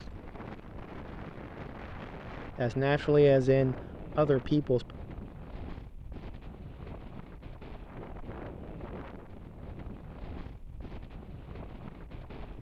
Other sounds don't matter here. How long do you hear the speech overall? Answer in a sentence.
The speech can be heard for 2 seconds in total.